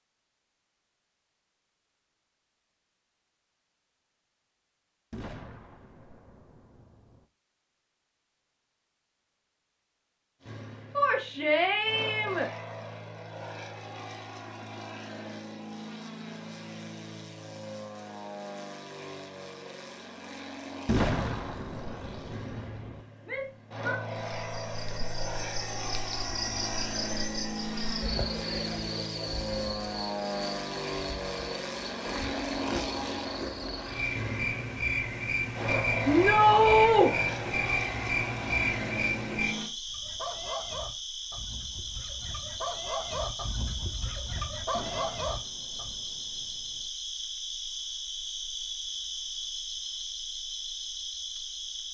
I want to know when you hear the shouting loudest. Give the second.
37 s.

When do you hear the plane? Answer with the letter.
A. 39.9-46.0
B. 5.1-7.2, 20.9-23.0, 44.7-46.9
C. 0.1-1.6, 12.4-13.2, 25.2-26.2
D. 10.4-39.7
D.